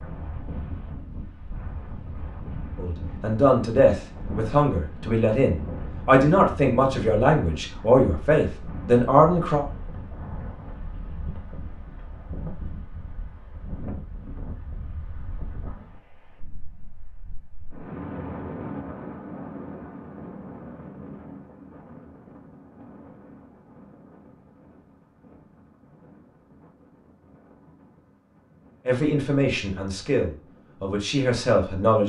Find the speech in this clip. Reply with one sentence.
You can hear the speech from 2.8 to 9.7 s and from 28.9 to 32.0 s.